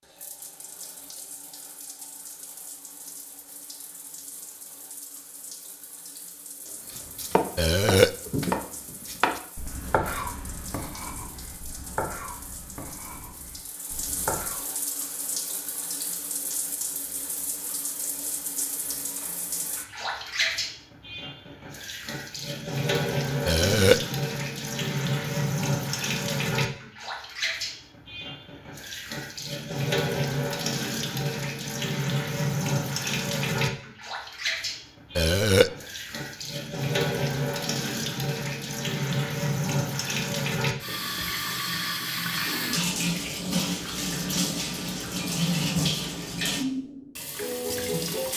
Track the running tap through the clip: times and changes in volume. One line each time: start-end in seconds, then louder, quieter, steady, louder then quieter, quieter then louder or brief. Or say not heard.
0.0-48.3 louder.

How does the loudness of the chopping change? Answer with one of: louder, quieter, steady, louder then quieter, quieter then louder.
quieter.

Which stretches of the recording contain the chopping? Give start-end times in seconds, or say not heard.
6.8-14.6.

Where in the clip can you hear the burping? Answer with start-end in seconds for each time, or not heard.
7.5-8.2, 23.4-24.0, 35.1-35.7.